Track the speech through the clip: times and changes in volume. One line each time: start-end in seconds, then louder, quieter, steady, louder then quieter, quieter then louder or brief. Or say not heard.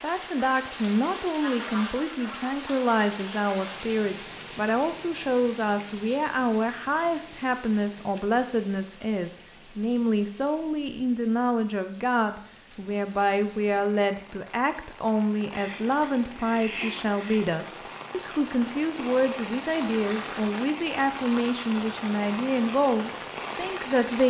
0.0-24.2 steady.